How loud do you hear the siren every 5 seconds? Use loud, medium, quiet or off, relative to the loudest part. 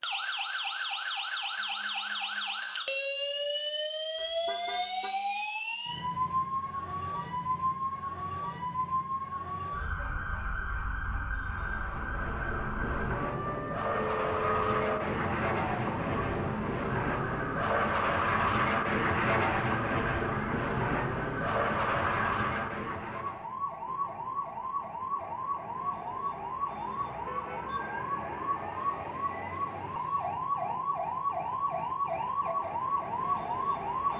loud, loud, medium, medium, medium, loud, loud.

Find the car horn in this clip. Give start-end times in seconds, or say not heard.
4.2-5.1, 13.9-15.1, 28.8-30.4.